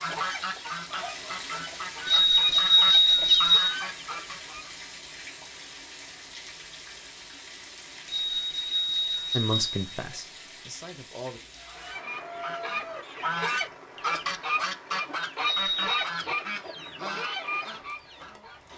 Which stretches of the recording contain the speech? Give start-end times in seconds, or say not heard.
9.3-11.4.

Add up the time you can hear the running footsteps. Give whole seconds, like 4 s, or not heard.
not heard.